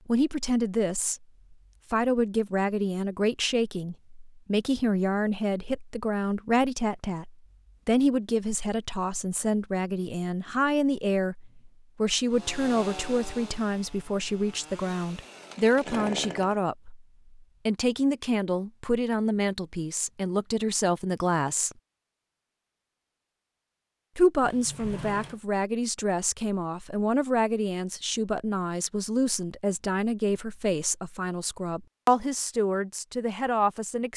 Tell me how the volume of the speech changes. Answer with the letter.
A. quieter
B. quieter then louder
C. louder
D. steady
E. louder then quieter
D.